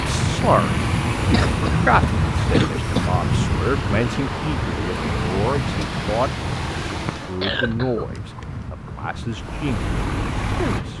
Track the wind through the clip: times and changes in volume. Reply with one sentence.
The wind can be heard from 0.0 to 10.9 s, getting quieter.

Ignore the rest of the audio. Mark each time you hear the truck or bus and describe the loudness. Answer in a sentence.
You can hear the truck or bus from 0.0 to 7.5 s, at a steady volume; and briefly from 9.2 to 10.9 s.